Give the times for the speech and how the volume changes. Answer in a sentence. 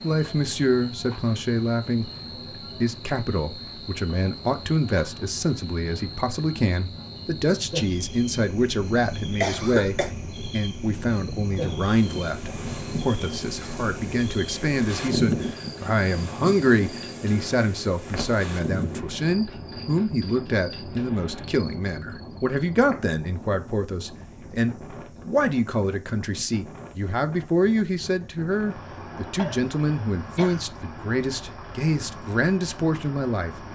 The speech can be heard briefly from 0.0 to 2.1 s; and from 2.8 to 33.6 s, at a steady volume.